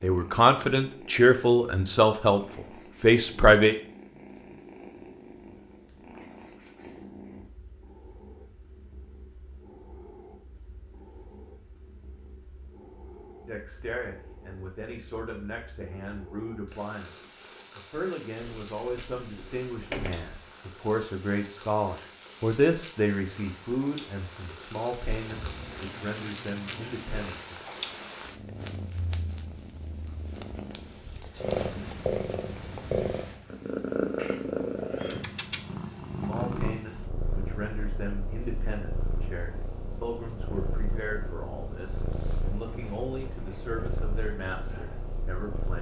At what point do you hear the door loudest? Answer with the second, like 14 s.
20 s.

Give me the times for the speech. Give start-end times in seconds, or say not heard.
0.0-3.8, 13.4-27.6, 36.2-45.7.